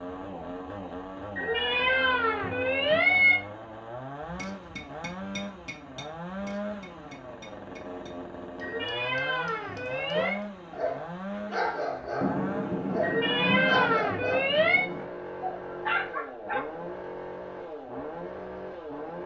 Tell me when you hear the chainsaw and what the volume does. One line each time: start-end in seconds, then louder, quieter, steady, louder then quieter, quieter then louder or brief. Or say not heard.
0.0-19.2 steady.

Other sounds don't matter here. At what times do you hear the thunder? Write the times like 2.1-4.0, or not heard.
12.2-15.1.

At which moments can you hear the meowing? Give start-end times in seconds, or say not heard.
1.4-3.4, 8.6-10.4, 13.0-14.9.